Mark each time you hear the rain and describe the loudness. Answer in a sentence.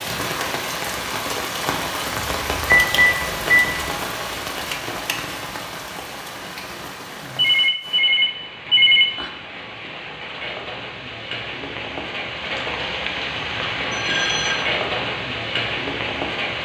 The rain can be heard from 0.0 to 16.6 s, getting quieter then louder.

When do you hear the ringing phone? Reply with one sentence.
You can hear the ringing phone from 2.6 to 3.6 s, from 7.3 to 9.3 s and from 13.9 to 14.6 s.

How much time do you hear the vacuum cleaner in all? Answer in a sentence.
You can't hear the vacuum cleaner here.